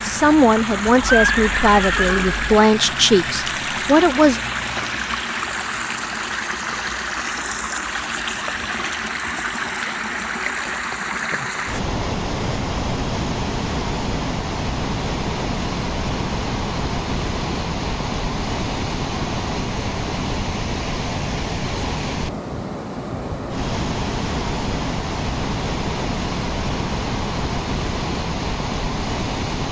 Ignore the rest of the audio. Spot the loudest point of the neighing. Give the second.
1 s.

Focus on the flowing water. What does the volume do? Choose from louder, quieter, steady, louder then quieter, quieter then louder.
steady.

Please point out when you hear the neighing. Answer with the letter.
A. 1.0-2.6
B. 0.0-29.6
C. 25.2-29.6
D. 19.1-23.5
A.